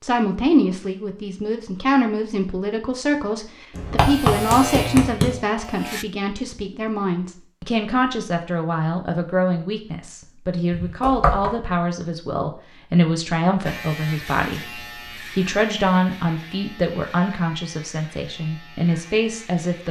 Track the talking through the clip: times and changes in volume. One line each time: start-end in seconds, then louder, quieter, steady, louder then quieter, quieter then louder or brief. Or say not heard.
0.0-19.8 steady.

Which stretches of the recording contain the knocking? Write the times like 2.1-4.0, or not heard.
3.8-5.3, 10.7-11.5.